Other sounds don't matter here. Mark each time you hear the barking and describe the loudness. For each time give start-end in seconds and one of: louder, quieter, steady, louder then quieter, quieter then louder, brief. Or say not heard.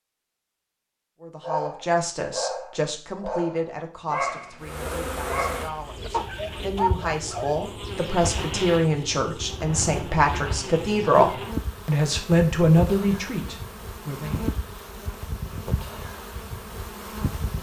1.4-7.7 steady.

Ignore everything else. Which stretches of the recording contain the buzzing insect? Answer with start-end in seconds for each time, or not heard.
4.6-17.5.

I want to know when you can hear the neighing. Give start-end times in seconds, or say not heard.
not heard.